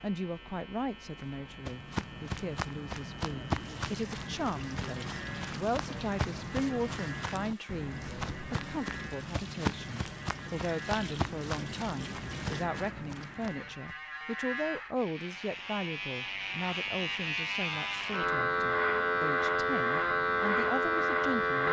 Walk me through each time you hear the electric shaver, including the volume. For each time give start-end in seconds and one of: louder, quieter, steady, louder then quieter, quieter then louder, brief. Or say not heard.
0.0-21.6 louder.